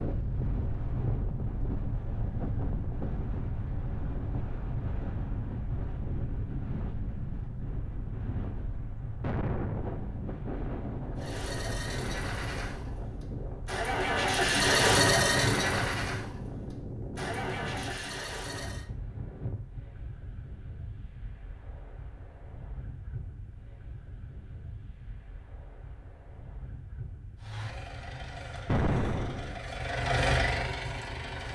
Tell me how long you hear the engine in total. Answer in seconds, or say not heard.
12 s.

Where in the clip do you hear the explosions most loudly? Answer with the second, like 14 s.
29 s.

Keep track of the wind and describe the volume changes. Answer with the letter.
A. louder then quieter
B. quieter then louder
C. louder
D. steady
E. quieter
E.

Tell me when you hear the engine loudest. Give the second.
15 s.